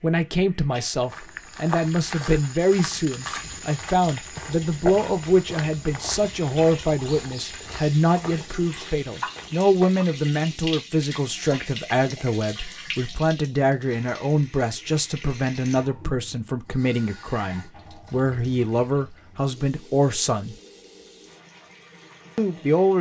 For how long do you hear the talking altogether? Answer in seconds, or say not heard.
21 s.